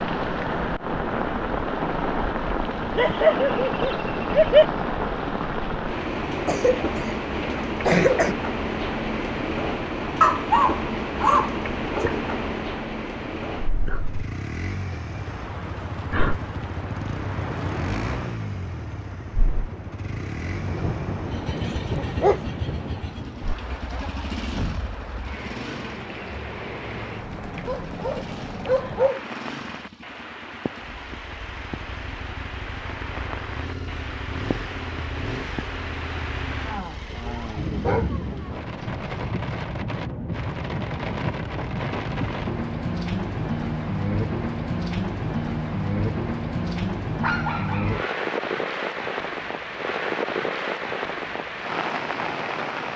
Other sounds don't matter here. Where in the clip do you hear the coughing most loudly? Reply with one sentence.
The volume of the coughing peaks at 8 seconds.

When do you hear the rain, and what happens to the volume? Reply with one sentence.
You can hear the rain from 0.0 to 52.9 s, getting quieter then louder.